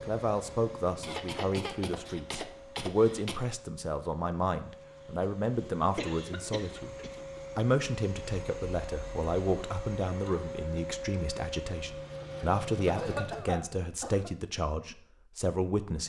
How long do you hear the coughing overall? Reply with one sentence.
The coughing can be heard for 5 seconds in total.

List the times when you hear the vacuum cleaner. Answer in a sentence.
The vacuum cleaner can be heard from 0.0 to 13.5 s.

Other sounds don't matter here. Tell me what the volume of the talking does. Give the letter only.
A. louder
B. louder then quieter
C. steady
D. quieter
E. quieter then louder
C.